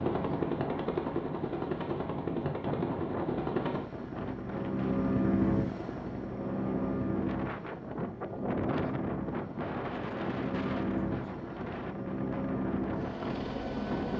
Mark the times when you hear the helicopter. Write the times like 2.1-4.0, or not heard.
0.0-14.1.